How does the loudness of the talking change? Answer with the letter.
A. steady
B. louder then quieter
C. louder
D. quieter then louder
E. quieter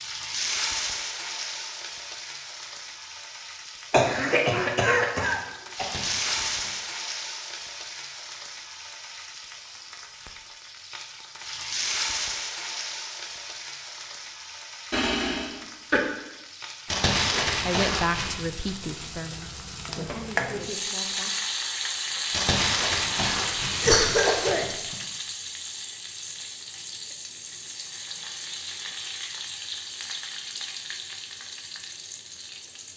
E.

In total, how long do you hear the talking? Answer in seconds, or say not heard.
4 s.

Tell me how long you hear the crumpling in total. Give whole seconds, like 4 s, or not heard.
5 s.